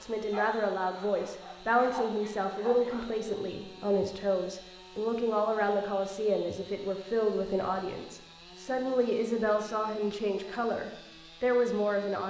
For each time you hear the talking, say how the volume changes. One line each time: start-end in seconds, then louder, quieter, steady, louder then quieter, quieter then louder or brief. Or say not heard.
0.0-12.2 steady.